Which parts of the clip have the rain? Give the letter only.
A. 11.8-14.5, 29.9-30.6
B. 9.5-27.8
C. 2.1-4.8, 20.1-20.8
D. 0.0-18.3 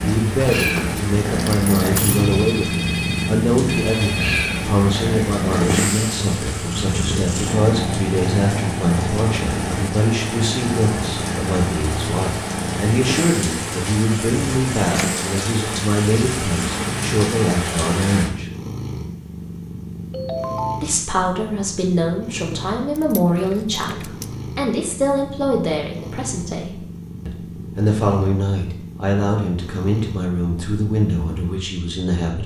D.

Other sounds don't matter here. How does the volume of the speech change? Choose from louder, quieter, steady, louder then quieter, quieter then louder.
steady.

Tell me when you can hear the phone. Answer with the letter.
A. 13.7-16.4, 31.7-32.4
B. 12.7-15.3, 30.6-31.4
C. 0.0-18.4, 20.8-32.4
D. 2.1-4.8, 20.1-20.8
D.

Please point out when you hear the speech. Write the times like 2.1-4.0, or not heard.
0.0-18.4, 20.8-32.4.